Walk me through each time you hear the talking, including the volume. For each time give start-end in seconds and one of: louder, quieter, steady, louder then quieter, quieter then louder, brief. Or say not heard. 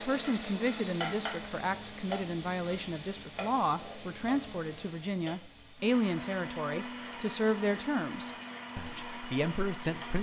0.0-10.1 steady.